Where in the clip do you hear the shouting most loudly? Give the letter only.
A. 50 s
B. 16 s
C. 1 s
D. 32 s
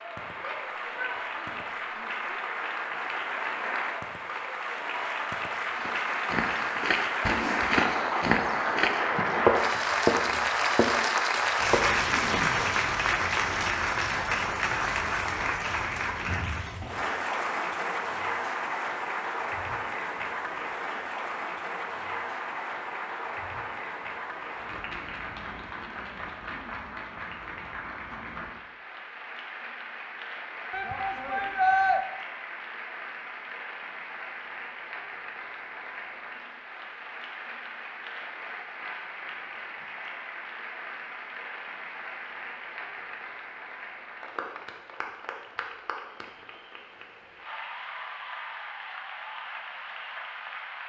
D.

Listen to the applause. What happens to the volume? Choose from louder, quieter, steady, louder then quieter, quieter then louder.
quieter.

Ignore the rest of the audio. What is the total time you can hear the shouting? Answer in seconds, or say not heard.
3 s.